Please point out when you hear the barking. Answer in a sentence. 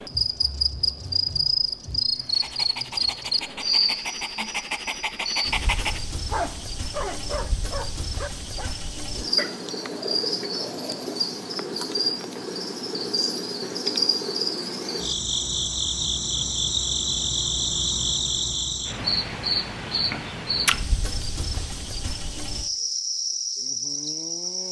The barking can be heard from 2.2 to 11.2 s.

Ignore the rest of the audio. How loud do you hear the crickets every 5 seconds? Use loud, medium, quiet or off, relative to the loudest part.
loud, medium, loud, loud, loud.